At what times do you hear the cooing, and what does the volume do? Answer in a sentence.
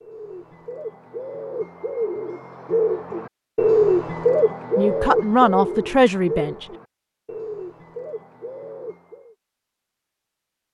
The cooing can be heard from 0.0 to 9.3 s, getting louder then quieter.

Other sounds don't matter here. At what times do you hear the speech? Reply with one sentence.
You can hear the speech from 4.8 to 6.7 s.